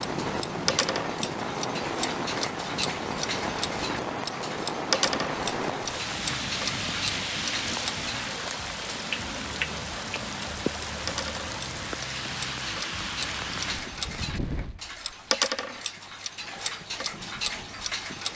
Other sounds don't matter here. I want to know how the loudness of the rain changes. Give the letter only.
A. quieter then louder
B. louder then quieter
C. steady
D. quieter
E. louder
D.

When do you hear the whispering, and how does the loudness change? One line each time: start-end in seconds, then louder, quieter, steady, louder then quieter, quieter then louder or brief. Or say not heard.
not heard.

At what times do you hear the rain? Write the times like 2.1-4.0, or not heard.
0.0-18.3.